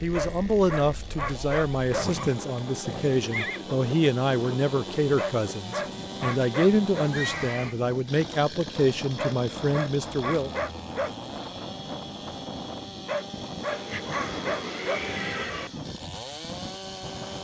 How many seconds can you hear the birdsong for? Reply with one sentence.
You can't hear the birdsong here.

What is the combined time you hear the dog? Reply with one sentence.
The dog can be heard for 8 seconds in total.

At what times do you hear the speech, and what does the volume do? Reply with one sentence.
You can hear the speech from 0.0 to 10.5 s, at a steady volume.